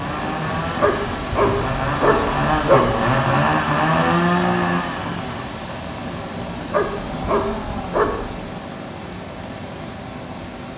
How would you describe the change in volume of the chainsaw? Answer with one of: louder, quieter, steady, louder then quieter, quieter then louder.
louder then quieter.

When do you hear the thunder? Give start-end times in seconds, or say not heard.
not heard.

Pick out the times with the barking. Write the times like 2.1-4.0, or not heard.
0.8-3.1, 6.7-8.3.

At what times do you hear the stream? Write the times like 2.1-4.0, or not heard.
0.0-10.7.